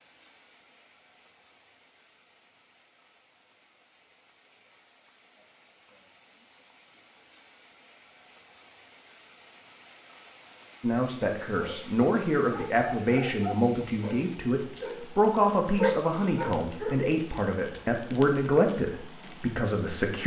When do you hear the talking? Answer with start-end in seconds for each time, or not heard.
10.8-20.2.